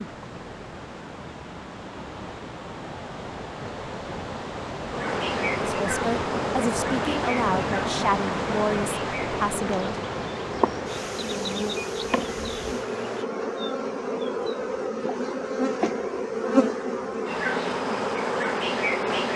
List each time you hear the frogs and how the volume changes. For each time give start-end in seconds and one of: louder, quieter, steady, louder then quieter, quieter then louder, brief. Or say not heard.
not heard.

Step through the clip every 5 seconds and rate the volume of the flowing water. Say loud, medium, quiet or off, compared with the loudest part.
medium, loud, medium, off.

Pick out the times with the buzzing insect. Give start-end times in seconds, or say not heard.
4.8-19.3.